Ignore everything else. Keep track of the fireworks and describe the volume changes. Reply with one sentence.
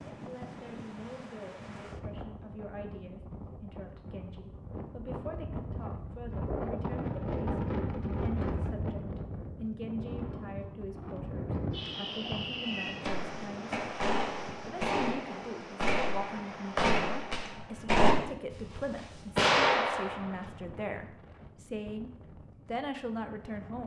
The loudness of the fireworks goes up.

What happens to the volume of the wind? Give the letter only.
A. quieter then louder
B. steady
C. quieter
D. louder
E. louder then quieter
E.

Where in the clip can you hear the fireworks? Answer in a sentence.
The fireworks can be heard from 11.7 to 20.4 s.